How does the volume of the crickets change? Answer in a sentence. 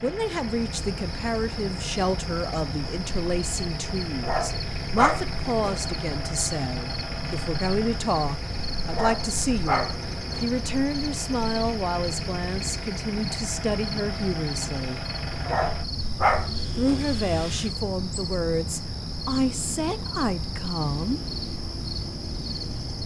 The loudness of the crickets stays about the same.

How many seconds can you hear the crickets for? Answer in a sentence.
The crickets can be heard for 23 seconds in total.